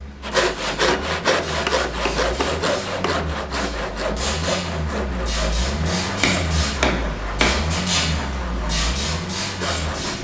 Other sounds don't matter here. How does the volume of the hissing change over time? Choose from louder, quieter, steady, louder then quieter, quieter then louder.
louder.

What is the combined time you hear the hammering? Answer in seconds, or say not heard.
4 s.